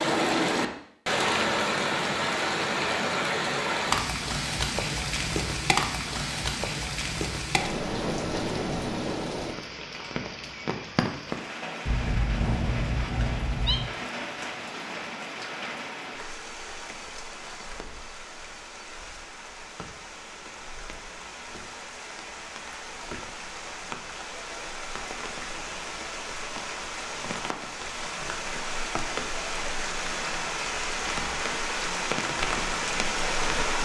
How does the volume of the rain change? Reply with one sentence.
The volume of the rain goes down, then up.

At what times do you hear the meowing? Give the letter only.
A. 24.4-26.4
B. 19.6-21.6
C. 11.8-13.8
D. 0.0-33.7
C.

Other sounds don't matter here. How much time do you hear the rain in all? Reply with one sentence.
The rain can be heard for 34 seconds in total.